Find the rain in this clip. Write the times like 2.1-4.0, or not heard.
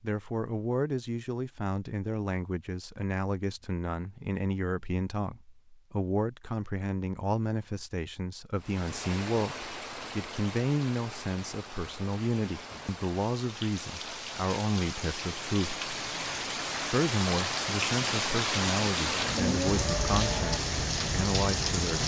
8.6-22.0.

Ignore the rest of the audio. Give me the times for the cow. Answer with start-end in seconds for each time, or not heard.
19.1-20.6.